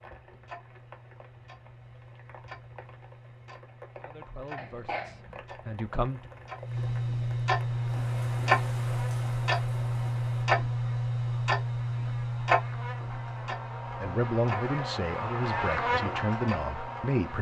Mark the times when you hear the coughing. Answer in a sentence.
The coughing can be heard from 4.5 to 5.4 s.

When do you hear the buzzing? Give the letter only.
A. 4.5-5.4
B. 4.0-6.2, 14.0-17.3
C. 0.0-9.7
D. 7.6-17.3
D.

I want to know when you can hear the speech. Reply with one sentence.
The speech can be heard from 4.0 to 6.2 s and from 14.0 to 17.3 s.